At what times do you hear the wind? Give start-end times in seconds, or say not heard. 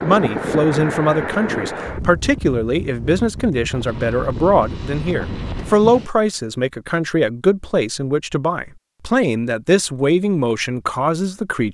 0.0-6.1.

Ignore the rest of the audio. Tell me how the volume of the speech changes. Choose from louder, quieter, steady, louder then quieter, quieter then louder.
steady.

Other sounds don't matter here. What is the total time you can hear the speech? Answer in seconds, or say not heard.
12 s.